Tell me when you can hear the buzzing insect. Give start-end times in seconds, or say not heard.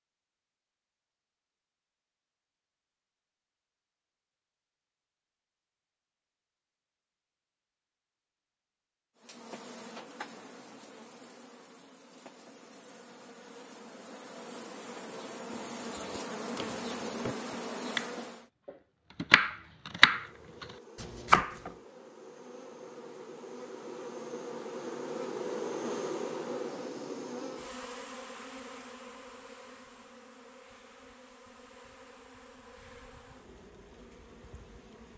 9.2-18.5, 20.0-35.1.